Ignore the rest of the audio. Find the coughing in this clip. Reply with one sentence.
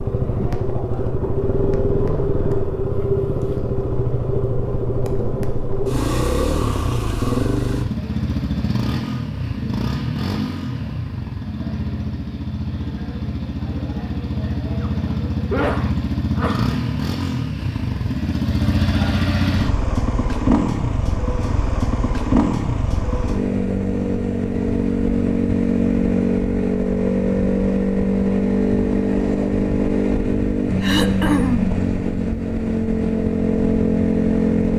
You can hear the coughing from 3.0 to 3.5 s, from 14.8 to 16.8 s and from 30.8 to 31.8 s.